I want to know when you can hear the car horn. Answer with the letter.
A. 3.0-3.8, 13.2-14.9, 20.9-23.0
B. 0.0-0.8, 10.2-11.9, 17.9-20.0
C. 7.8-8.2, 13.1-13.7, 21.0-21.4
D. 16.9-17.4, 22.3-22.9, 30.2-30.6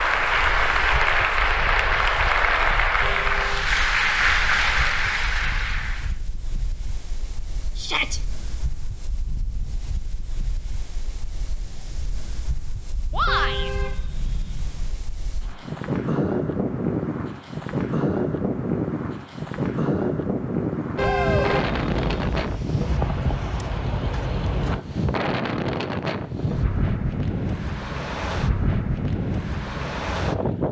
A.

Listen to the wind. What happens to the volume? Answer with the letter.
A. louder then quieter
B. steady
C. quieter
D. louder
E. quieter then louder
D.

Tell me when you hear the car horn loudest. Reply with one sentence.
The loudest moment of the car horn is at 21 seconds.